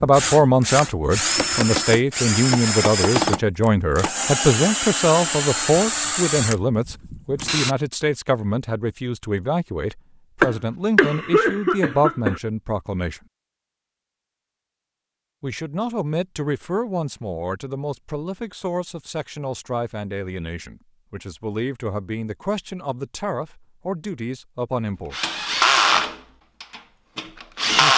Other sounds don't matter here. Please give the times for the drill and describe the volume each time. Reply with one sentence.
The drill can be heard from 0.0 to 7.8 s, at a steady volume; and briefly from 25.1 to 27.9 s.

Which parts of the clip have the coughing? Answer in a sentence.
The coughing can be heard from 10.4 to 12.4 s.